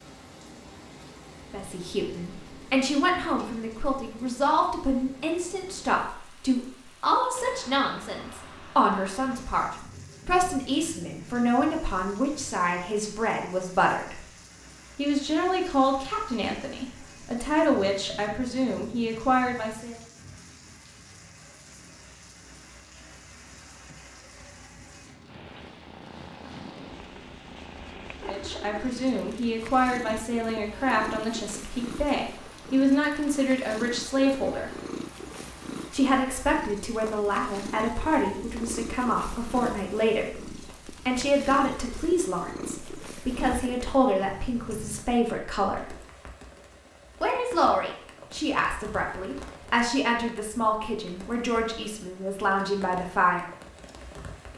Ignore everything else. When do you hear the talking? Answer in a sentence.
You can hear the talking from 1.5 to 14.2 s, from 14.9 to 20.0 s, from 28.2 to 34.7 s, from 35.9 to 46.0 s and from 47.2 to 53.5 s.